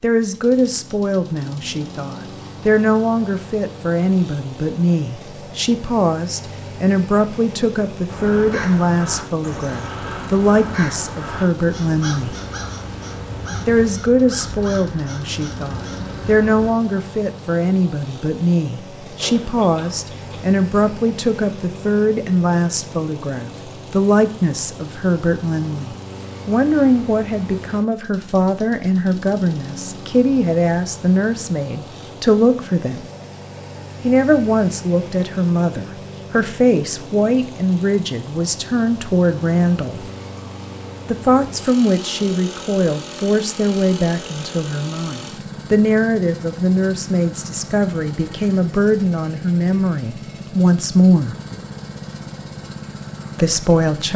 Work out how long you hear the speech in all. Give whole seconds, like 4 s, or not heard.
49 s.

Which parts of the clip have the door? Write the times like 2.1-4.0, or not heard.
not heard.